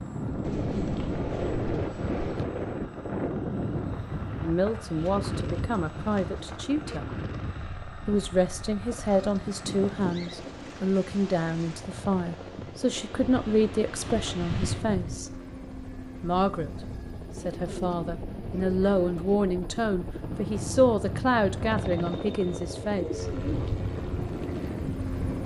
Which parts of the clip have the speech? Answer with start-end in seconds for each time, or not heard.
4.4-7.0, 8.1-15.3, 16.2-16.7, 17.4-23.4.